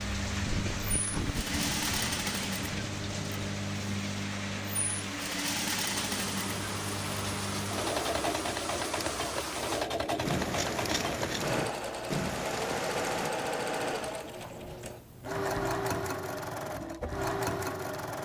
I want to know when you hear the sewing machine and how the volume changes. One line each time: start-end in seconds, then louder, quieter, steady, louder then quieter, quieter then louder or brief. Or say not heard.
0.0-18.2 steady.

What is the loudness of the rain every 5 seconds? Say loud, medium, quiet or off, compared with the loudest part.
loud, loud, loud, off.